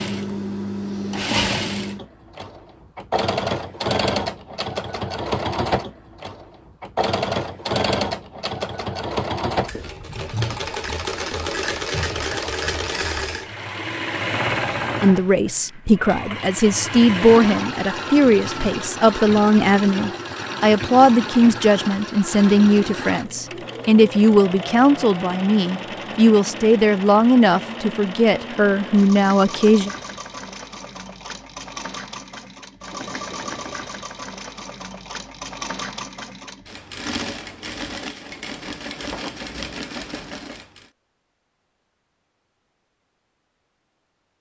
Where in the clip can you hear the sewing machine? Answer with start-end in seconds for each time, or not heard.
0.0-40.9.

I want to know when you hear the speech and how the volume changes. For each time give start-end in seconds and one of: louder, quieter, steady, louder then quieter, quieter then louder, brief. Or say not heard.
15.0-29.9 steady.